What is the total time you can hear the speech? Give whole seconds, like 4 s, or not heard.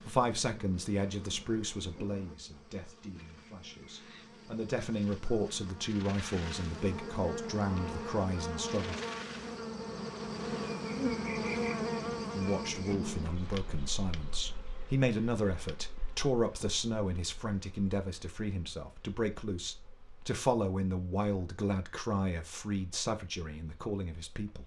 21 s.